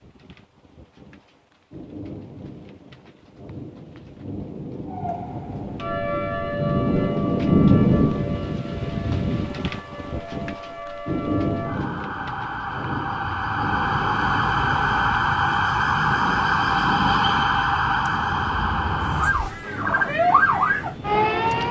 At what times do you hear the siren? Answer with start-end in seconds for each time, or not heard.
4.9-21.6.